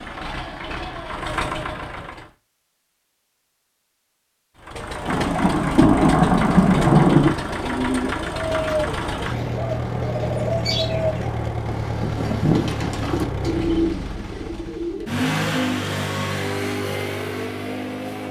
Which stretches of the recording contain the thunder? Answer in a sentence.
The thunder can be heard from 5.0 to 7.3 s.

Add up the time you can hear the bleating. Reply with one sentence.
The bleating can't be heard in this clip.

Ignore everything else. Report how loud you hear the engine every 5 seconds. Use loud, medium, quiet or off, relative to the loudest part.
medium, loud, loud, loud.